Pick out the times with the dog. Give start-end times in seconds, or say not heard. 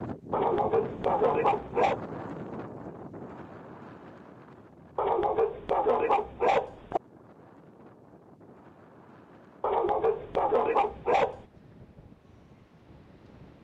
0.3-2.0, 5.0-7.0, 9.6-11.4.